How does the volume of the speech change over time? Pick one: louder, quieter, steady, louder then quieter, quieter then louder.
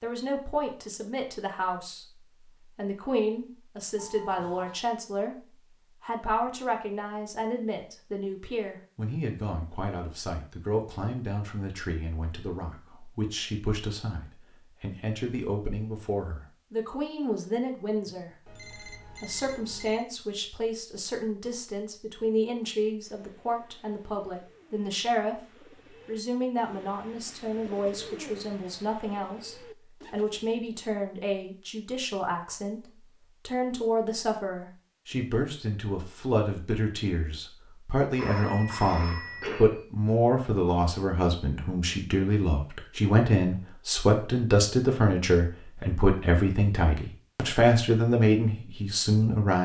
louder.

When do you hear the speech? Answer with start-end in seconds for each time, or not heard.
0.0-49.6.